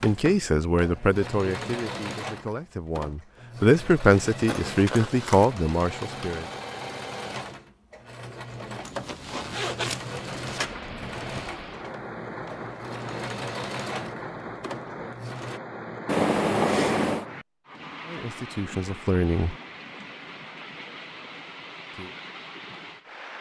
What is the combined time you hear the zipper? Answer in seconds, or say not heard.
4 s.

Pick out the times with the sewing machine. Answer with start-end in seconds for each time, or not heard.
0.0-15.6.